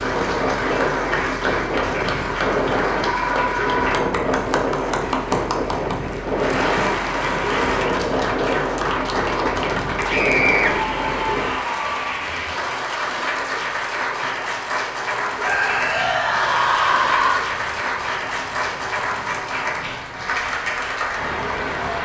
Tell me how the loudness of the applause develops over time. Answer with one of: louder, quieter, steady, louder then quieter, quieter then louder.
steady.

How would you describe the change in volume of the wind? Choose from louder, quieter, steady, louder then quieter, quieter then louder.
quieter.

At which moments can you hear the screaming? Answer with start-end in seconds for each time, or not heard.
3.0-4.1, 10.1-10.7, 15.3-17.4.